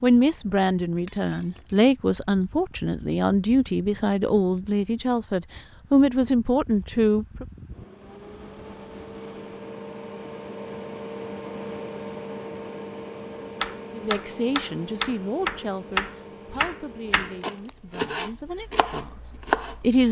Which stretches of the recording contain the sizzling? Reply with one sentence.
You can't hear the sizzling here.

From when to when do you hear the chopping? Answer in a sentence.
You can hear the chopping from 13.6 to 19.8 s.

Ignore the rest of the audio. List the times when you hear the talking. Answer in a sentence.
You can hear the talking from 0.0 to 7.5 s and from 13.9 to 20.0 s.